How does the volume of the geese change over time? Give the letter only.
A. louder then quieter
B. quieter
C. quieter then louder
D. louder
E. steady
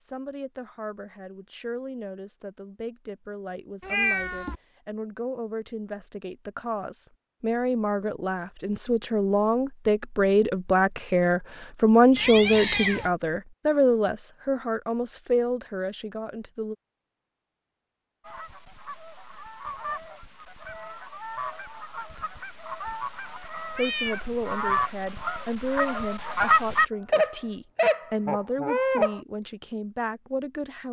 D.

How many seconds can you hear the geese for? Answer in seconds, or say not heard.
11 s.